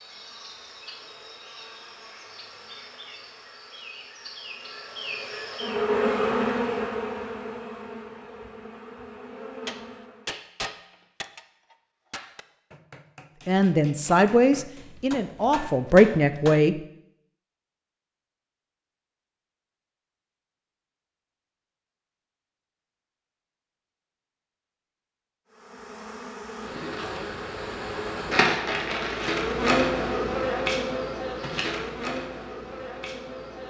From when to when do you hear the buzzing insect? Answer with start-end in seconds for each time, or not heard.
0.0-10.3, 25.5-33.6.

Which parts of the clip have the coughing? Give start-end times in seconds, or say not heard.
not heard.